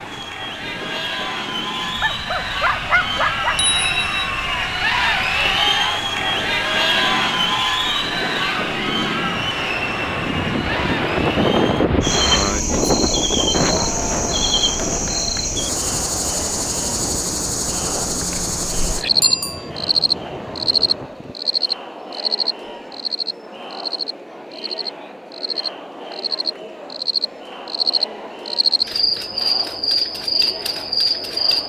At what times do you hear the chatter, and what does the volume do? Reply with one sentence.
You can hear the chatter from 0.0 to 31.6 s, getting quieter.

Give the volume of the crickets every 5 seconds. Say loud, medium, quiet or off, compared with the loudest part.
off, off, loud, loud, loud, loud, loud.